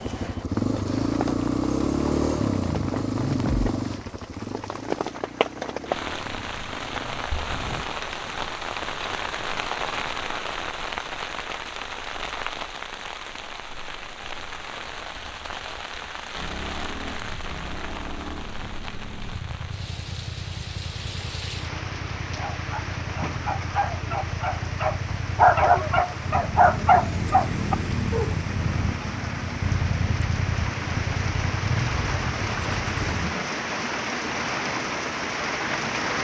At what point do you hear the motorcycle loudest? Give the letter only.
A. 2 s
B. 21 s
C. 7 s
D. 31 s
A.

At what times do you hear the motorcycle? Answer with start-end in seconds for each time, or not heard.
0.0-7.3, 16.4-33.4.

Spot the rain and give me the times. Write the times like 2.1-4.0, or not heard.
0.0-36.2.